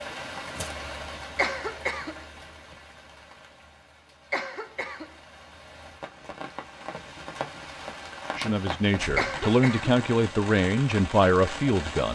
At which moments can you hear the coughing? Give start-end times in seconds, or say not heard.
1.4-2.2, 4.3-5.1, 9.2-9.9.